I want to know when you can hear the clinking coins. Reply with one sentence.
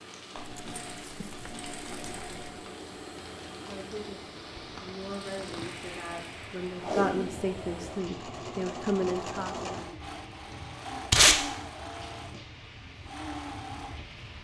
The clinking coins can be heard from 0.3 to 2.4 s.